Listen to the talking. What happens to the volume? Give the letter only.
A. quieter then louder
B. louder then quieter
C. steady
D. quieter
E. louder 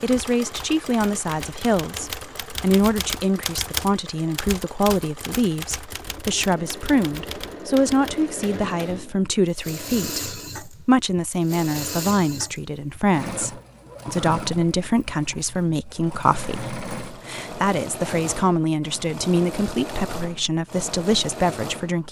C.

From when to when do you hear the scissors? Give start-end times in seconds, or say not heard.
not heard.